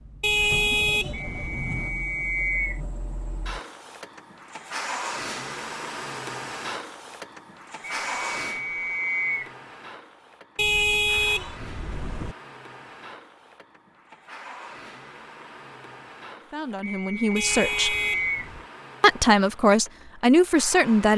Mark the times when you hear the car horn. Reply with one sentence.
You can hear the car horn from 0.2 to 1.6 s, from 10.6 to 12.3 s and from 17.4 to 18.6 s.